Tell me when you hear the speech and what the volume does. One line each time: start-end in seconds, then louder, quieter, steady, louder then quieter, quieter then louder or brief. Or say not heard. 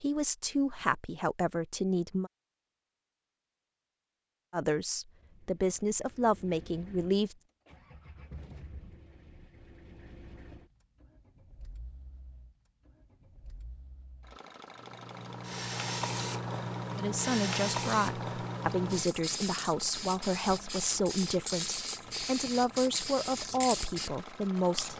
0.0-2.3 brief
4.5-7.3 brief
16.9-24.9 steady.